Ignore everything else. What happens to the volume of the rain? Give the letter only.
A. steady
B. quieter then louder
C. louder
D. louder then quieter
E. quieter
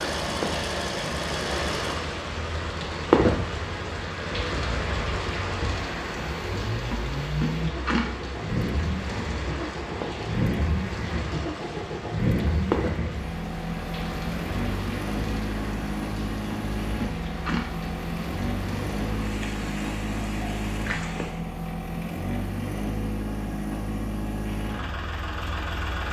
E.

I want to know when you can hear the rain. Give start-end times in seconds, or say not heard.
0.0-21.4.